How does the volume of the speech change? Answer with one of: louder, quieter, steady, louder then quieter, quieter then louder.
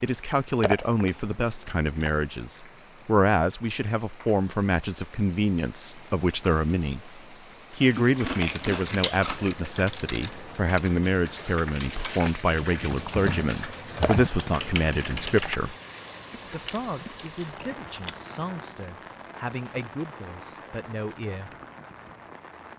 quieter.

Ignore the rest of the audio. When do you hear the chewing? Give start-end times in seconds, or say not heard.
8.0-9.5, 16.3-18.3.